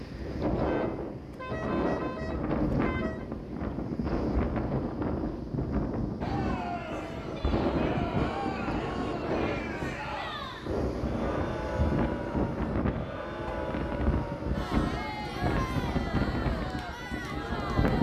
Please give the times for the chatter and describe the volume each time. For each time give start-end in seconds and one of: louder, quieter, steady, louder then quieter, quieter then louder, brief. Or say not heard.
6.2-17.9 steady.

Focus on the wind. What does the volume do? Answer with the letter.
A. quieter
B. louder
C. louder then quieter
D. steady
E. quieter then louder
D.